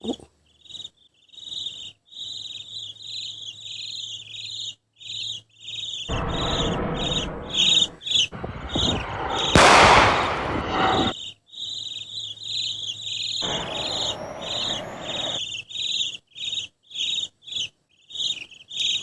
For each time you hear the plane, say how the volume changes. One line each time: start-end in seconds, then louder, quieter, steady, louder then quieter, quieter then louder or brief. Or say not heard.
6.0-11.2 quieter then louder
13.4-15.4 brief.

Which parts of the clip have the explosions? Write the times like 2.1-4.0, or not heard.
9.6-10.6.